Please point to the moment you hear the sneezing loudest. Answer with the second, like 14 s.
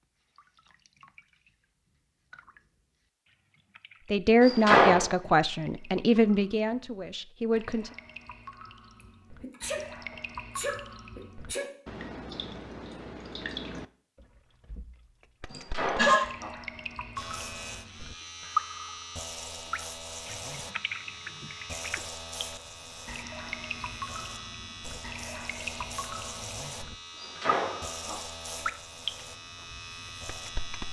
16 s.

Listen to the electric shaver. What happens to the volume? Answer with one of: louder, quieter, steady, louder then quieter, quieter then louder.
steady.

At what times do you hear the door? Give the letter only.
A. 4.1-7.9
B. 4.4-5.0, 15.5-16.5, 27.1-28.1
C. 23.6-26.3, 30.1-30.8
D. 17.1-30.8
B.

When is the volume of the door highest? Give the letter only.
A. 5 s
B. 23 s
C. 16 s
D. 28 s
A.